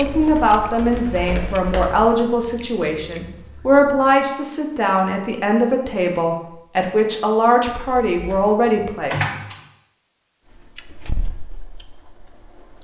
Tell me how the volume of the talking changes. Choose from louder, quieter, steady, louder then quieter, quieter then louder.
steady.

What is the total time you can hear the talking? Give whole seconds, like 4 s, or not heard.
9 s.